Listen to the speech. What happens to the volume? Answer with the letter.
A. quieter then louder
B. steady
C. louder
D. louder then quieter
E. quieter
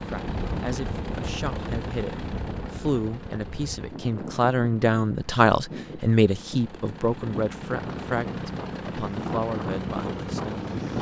D.